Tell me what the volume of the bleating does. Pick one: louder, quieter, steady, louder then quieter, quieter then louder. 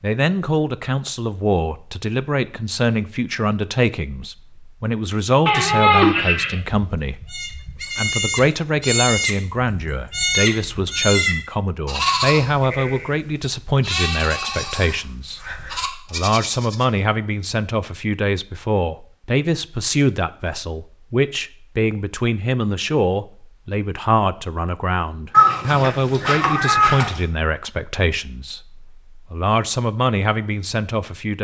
quieter.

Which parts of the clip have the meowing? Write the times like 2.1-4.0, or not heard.
5.5-6.5, 25.3-27.2.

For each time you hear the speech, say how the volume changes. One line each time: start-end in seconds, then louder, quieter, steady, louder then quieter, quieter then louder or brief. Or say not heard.
0.0-31.3 steady.